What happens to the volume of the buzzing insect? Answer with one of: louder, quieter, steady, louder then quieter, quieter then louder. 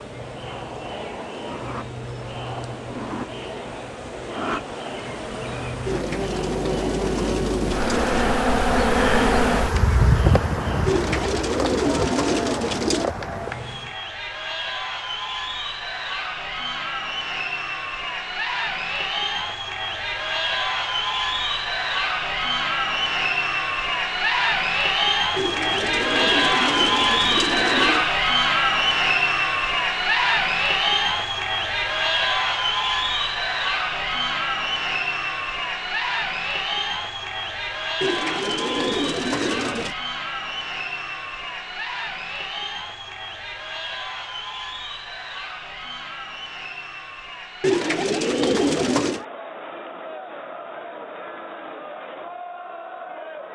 louder then quieter.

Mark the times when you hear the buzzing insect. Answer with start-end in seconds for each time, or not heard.
0.0-14.0.